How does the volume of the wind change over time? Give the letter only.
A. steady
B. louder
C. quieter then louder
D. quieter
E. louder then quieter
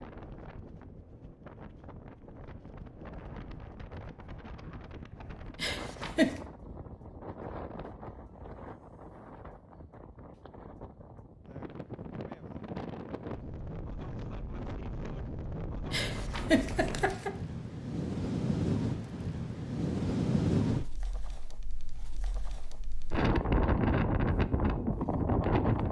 B.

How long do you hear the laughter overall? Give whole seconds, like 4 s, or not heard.
2 s.